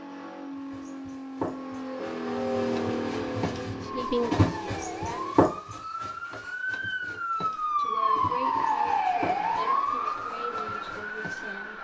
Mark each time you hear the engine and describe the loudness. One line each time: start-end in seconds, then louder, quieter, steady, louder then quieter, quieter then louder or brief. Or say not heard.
0.0-5.3 louder then quieter.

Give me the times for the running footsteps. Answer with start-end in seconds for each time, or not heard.
0.5-11.6.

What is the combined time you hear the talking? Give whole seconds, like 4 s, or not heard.
6 s.